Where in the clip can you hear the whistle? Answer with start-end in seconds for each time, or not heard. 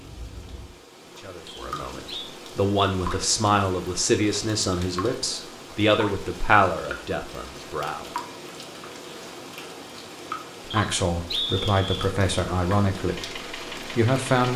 1.4-2.4, 10.7-12.1.